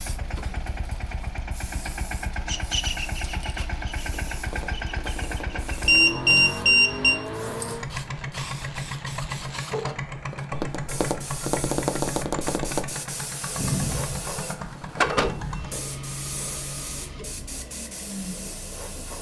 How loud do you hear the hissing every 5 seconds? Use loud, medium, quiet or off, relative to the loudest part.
quiet, medium, medium, loud.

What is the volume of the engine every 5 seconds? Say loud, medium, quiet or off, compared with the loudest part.
loud, loud, loud, medium.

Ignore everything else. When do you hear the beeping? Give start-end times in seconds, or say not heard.
5.8-7.2, 13.6-15.7.